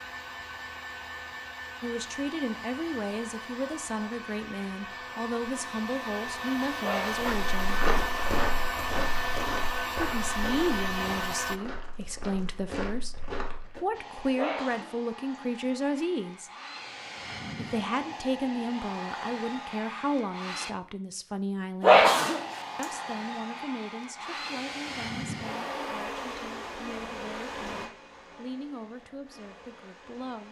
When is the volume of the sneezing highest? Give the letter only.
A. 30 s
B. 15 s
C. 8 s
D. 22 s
D.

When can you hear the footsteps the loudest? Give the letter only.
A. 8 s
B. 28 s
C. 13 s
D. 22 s
A.